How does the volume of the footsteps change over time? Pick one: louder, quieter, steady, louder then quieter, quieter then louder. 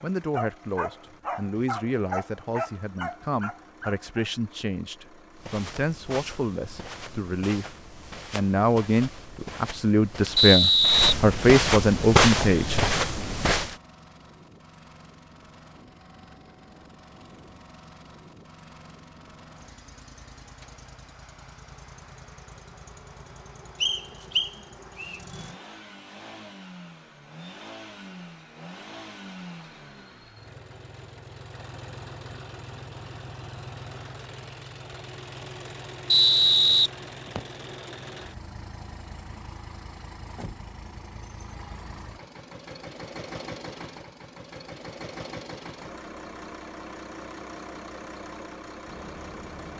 louder.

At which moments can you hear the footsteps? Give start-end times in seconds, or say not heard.
5.3-13.8.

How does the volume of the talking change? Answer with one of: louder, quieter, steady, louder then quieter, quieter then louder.
louder.